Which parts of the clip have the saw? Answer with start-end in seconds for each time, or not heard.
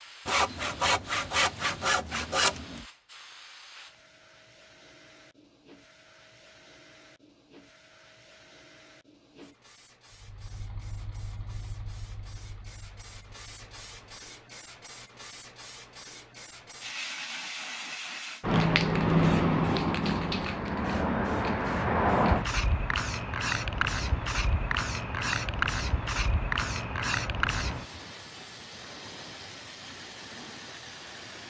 0.2-2.9.